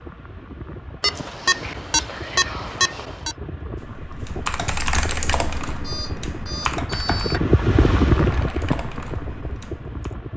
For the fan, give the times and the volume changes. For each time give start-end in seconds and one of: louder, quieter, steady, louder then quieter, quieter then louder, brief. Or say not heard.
0.0-10.3 louder.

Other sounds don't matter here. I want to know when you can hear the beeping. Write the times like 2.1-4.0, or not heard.
1.0-3.4, 5.8-7.4.